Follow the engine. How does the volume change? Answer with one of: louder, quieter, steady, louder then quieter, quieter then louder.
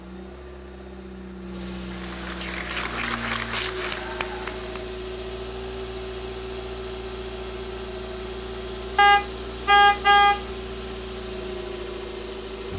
steady.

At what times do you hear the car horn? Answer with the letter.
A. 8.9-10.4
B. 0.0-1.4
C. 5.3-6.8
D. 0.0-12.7
A.